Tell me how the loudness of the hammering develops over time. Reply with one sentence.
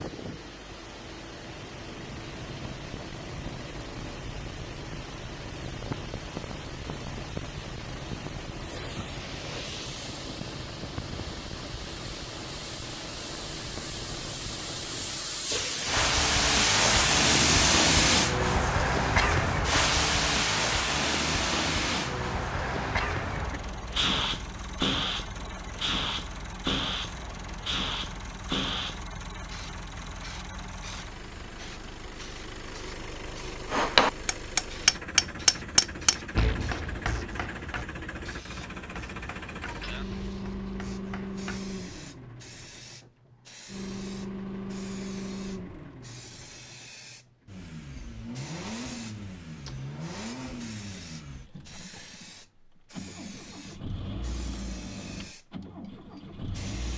The loudness of the hammering goes down.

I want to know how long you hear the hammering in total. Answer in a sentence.
You can hear the hammering for 8 seconds altogether.